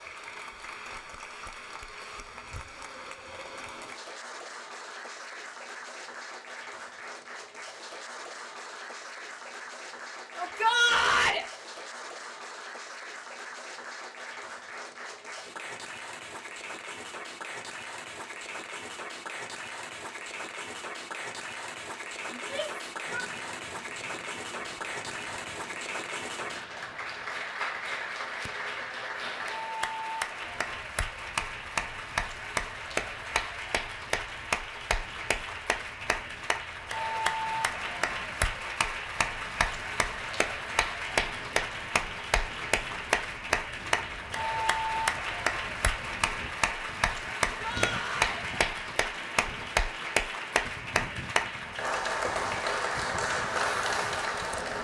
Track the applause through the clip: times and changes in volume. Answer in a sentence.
The applause can be heard from 0.0 to 54.7 s, getting louder.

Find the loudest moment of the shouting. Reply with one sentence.
The volume of the shouting peaks at 11 seconds.